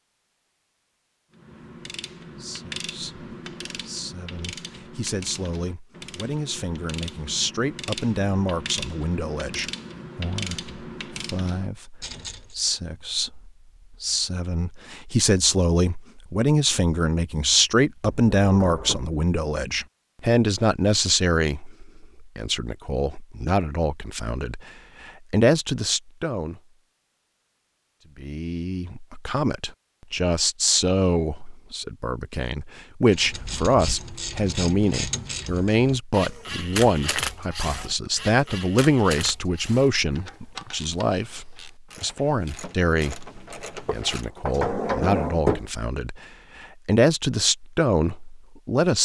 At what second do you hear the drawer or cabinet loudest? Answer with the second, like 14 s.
45 s.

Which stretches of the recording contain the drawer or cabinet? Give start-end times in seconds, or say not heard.
18.0-19.1, 43.9-45.6.